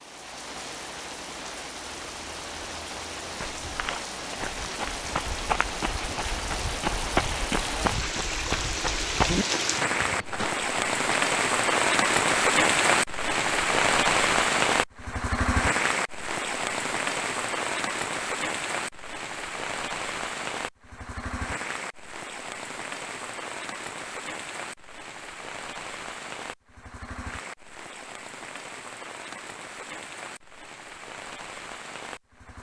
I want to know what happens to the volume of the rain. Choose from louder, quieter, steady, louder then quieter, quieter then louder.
louder then quieter.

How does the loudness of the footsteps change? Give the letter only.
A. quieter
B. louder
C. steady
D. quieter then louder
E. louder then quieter
B.